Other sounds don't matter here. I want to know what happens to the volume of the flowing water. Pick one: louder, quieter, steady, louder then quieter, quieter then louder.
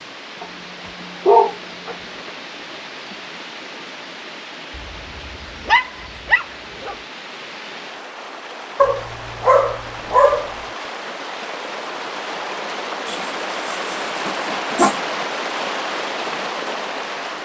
louder.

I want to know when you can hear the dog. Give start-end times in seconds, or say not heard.
0.4-1.9, 4.8-7.0, 8.8-10.6, 13.1-15.0.